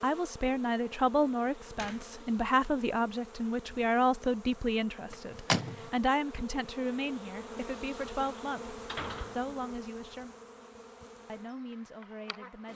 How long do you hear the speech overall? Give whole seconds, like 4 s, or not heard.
12 s.